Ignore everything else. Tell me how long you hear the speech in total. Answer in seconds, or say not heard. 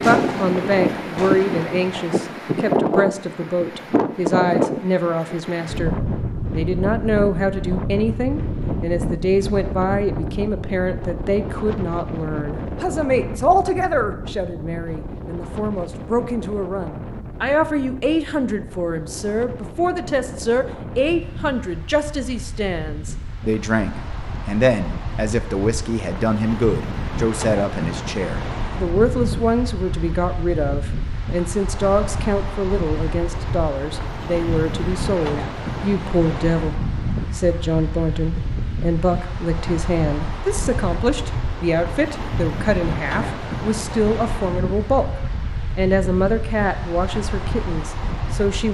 47 s.